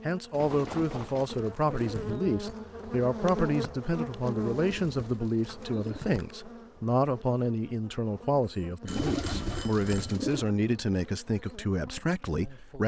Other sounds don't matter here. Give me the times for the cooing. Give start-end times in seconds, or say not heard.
0.3-2.1, 4.4-6.3, 8.8-10.4.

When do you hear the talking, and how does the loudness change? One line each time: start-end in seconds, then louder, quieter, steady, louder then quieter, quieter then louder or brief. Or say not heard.
0.1-12.8 steady.